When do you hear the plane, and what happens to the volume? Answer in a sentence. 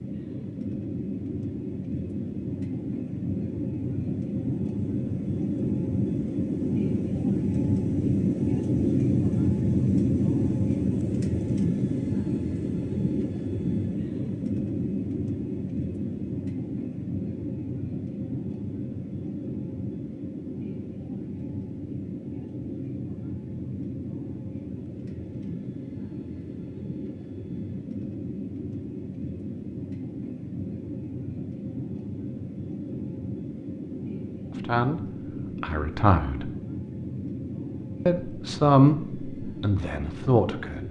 The plane can be heard from 0.0 to 40.8 s, getting quieter.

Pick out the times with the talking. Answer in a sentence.
The talking can be heard from 34.5 to 35.0 s, from 35.6 to 36.5 s and from 38.0 to 40.8 s.